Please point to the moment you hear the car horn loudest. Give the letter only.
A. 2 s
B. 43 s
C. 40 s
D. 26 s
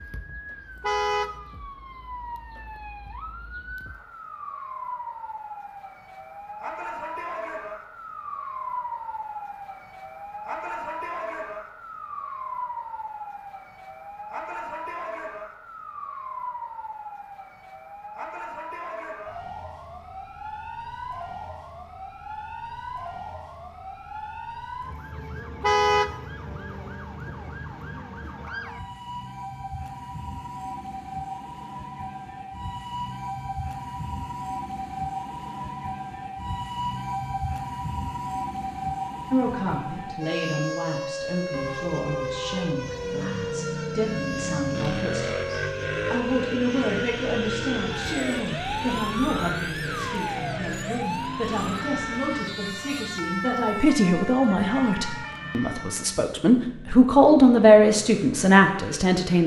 D.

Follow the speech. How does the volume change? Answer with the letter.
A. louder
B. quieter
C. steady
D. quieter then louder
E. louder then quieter
A.